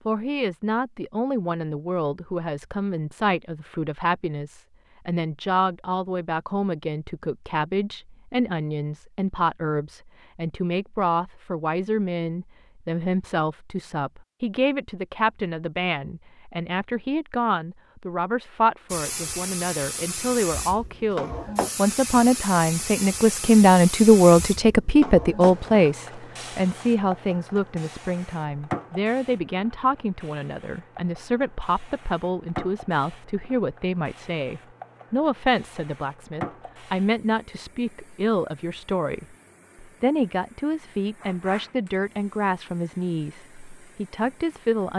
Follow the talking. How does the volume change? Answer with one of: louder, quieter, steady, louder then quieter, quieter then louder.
louder then quieter.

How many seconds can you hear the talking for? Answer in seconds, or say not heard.
45 s.